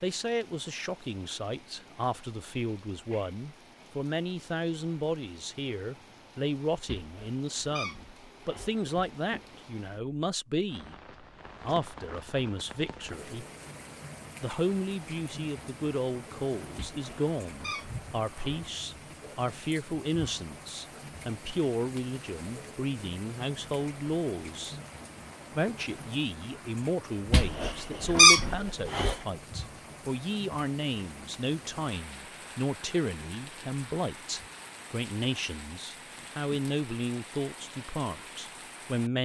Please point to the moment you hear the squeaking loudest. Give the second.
28 s.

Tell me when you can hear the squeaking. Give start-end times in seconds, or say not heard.
6.8-9.6, 16.8-18.6, 27.3-29.1.